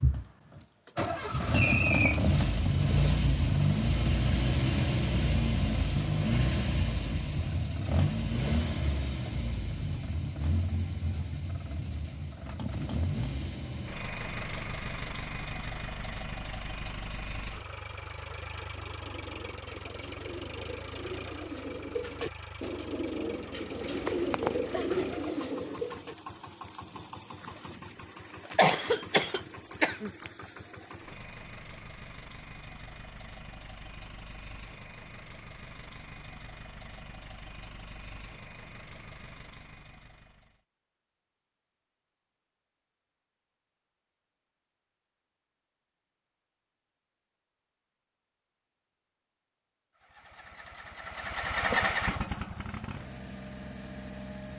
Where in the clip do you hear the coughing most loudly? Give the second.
29 s.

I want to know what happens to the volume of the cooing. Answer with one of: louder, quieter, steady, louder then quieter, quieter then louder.
louder.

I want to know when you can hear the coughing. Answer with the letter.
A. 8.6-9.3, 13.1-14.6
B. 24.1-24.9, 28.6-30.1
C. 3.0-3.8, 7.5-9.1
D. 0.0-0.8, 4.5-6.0
B.